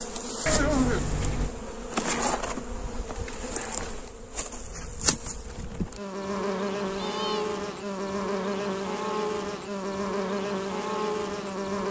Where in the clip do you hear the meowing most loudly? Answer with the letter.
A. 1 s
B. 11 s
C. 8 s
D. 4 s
A.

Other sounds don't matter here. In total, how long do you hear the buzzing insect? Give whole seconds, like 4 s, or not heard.
12 s.